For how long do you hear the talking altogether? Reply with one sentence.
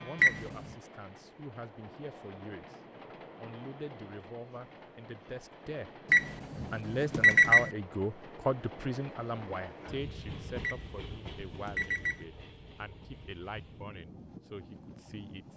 The talking can be heard for 14 seconds in total.